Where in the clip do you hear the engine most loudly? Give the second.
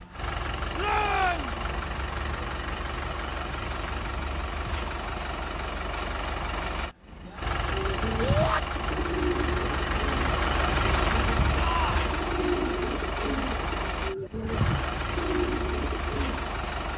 11 s.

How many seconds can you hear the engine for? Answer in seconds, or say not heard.
17 s.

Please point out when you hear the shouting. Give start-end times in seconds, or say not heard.
0.8-1.6, 8.2-8.6, 11.6-12.1.